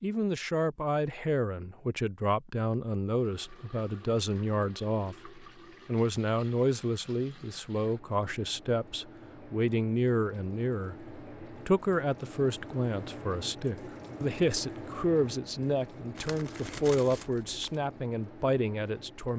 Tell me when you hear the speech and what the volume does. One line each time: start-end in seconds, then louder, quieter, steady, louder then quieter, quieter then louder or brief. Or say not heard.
0.0-19.3 steady.